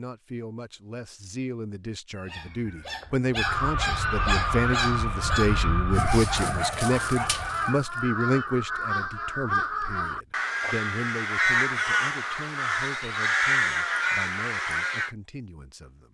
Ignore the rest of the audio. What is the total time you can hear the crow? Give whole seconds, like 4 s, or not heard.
12 s.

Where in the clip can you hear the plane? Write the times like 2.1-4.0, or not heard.
3.3-7.8.